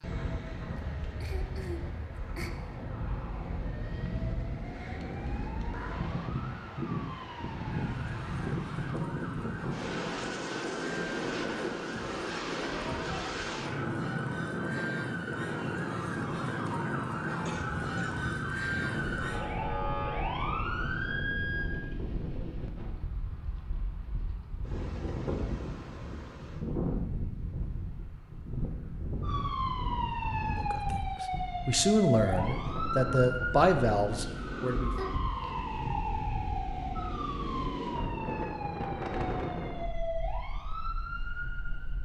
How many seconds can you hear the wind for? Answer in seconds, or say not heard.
42 s.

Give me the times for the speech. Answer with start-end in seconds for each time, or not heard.
30.6-34.9.